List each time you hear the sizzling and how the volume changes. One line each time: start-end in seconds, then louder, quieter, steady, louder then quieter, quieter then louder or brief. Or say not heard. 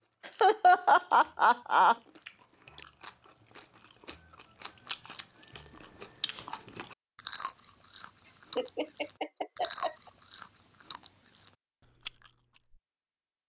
not heard.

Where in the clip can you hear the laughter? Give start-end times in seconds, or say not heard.
0.4-1.9, 8.2-10.1.